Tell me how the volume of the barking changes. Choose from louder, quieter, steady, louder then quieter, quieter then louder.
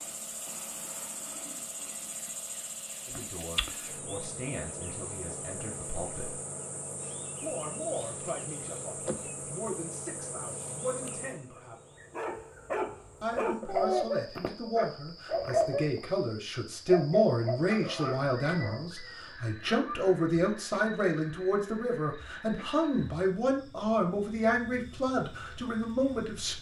quieter.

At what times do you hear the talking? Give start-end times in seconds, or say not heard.
3.0-6.4, 7.4-11.8, 13.2-26.5.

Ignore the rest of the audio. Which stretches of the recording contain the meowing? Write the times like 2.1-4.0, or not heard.
not heard.